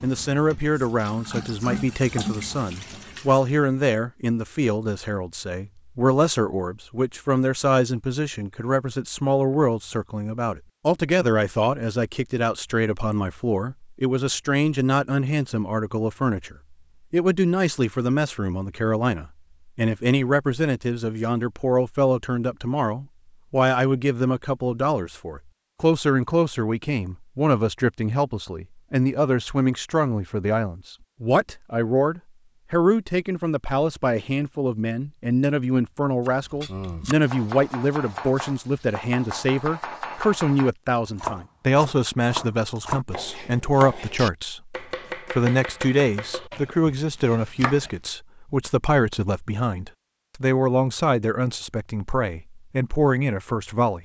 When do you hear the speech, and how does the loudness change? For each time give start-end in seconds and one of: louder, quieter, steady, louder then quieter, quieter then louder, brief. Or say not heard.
0.0-53.9 steady.